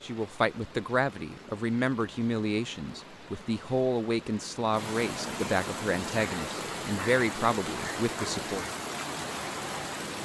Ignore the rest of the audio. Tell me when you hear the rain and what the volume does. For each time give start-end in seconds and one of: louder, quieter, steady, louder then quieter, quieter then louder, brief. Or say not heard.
0.0-10.2 louder.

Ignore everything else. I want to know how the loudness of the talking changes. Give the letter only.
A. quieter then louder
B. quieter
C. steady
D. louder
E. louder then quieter
C.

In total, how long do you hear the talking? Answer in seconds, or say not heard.
9 s.